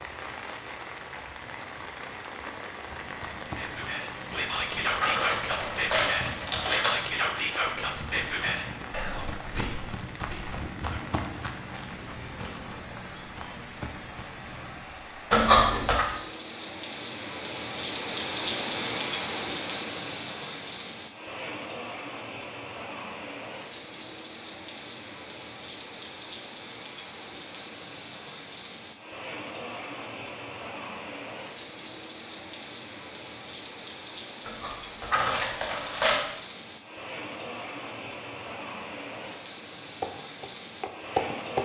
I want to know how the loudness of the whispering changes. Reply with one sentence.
The volume of the whispering goes down.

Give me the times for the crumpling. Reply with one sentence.
You can hear the crumpling from 4.3 to 7.0 s, from 15.3 to 16.1 s and from 34.5 to 36.2 s.